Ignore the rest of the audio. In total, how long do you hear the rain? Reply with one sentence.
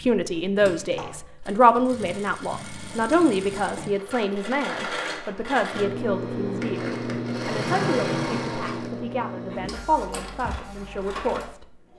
The rain can't be heard in this clip.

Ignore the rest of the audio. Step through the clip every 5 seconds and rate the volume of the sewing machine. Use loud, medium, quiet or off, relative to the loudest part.
medium, loud, medium.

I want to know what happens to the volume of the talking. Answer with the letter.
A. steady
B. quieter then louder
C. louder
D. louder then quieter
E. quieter
E.